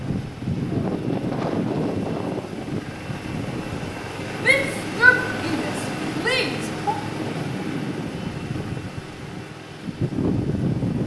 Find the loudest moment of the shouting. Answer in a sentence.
The volume of the shouting peaks at 5 seconds.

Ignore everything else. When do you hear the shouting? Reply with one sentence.
The shouting can be heard from 4.4 to 7.0 s.